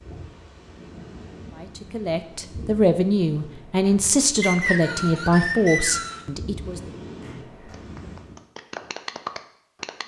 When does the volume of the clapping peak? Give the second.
9 s.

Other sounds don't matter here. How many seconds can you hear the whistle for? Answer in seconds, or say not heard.
2 s.